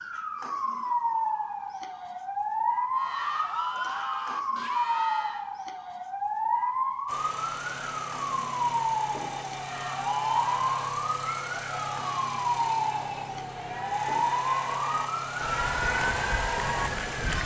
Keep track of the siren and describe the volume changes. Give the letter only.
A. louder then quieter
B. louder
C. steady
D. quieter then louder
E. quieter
C.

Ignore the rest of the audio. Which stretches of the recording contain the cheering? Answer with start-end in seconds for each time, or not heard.
3.0-5.5, 9.6-17.4.